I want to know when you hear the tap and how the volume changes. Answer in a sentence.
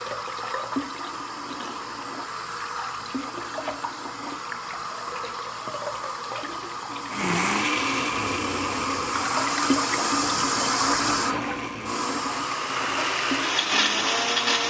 You can hear the tap from 0.0 to 14.6 s, getting louder then quieter.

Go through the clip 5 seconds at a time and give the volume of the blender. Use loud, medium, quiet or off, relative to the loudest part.
off, loud, loud.